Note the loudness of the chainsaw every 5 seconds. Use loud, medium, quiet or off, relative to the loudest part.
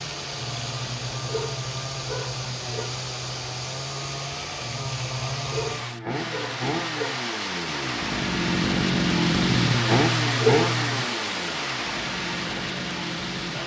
medium, loud, loud.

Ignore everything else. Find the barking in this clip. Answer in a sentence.
The barking can be heard from 0.3 to 2.9 s, from 4.6 to 7.2 s and from 9.7 to 11.1 s.